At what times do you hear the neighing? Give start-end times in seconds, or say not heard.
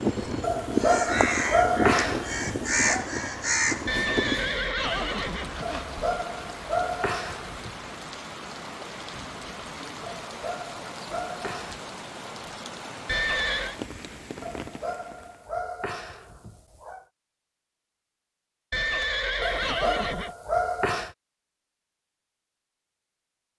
3.9-5.9, 13.1-13.8, 18.7-20.4.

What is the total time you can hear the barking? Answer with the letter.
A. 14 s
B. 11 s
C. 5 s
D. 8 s
B.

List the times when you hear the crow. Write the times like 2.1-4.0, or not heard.
0.0-4.5.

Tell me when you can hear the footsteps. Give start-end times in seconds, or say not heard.
not heard.